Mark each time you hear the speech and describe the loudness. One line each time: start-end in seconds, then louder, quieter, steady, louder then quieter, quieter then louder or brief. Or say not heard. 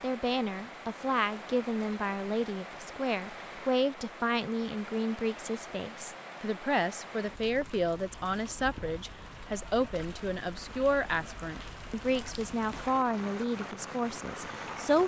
0.0-15.0 steady.